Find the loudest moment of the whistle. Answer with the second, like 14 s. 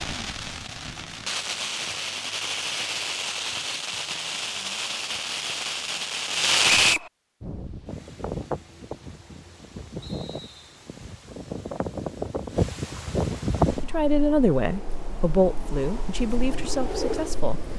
7 s.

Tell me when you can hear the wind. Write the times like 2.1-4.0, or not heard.
7.4-17.7.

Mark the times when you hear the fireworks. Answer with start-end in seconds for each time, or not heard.
0.0-7.0.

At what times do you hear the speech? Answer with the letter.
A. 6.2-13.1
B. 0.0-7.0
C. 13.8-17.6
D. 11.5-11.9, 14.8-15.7
C.